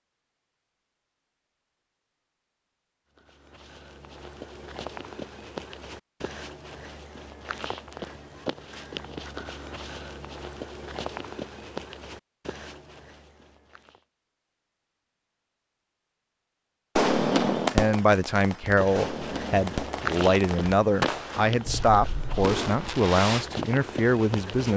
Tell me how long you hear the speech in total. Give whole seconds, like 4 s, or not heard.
7 s.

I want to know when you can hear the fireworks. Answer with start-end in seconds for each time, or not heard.
16.9-23.4.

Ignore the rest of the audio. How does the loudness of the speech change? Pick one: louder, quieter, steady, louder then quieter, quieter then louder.
steady.